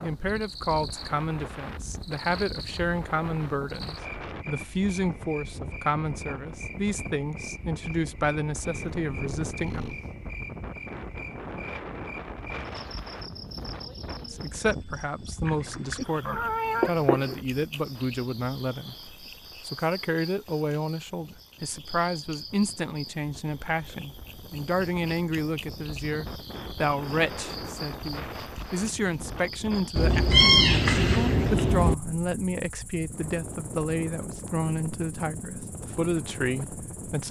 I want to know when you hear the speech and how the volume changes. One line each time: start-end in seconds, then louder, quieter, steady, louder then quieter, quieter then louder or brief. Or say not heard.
0.0-9.8 steady
14.3-37.2 steady.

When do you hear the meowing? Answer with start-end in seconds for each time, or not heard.
8.6-10.1, 15.4-17.4, 29.9-31.9.